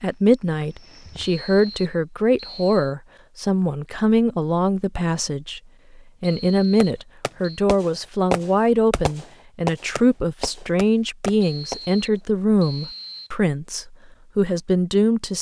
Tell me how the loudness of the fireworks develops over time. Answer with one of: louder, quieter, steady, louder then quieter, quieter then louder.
louder then quieter.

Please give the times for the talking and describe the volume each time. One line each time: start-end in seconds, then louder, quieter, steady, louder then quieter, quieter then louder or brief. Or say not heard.
0.0-15.3 steady.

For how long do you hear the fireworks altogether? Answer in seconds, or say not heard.
5 s.